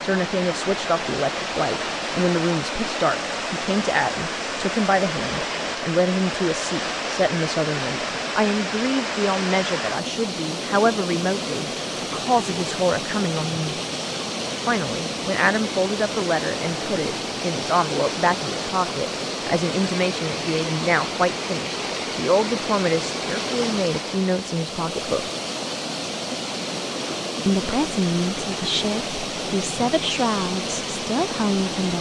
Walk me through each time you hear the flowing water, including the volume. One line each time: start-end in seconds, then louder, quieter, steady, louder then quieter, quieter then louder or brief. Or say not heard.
0.0-31.9 steady.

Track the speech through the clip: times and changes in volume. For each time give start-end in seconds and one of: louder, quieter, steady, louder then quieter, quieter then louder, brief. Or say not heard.
0.0-13.8 steady
14.7-25.2 steady
27.4-31.9 steady.